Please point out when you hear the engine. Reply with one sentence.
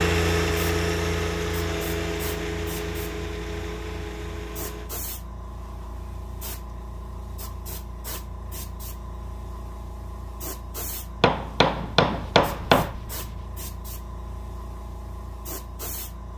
The engine can be heard from 0.0 to 4.9 s.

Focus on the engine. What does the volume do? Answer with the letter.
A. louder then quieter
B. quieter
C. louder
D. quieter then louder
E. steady
B.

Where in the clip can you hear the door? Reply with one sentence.
You can't hear the door here.